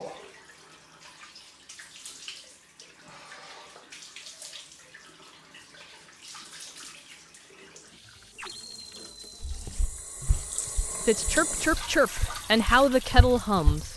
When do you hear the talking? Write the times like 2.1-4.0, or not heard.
11.0-13.9.